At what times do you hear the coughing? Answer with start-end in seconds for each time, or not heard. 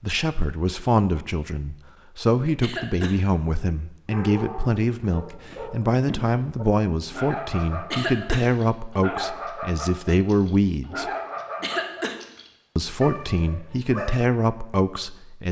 2.6-3.1, 7.9-8.4, 11.6-12.2.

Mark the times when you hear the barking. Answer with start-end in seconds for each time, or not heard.
4.0-14.2.